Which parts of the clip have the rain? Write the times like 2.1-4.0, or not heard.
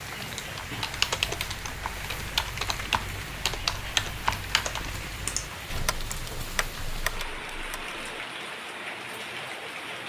0.0-10.0.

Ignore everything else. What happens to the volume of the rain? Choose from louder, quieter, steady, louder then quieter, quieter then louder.
steady.